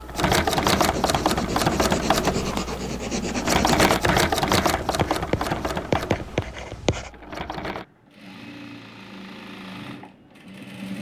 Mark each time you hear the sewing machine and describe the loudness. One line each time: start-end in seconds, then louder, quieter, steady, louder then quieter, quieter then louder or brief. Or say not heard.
0.0-10.9 quieter.